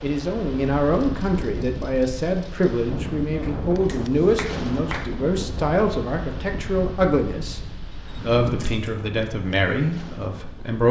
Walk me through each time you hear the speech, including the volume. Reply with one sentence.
The speech can be heard from 0.0 to 10.8 s, at a steady volume.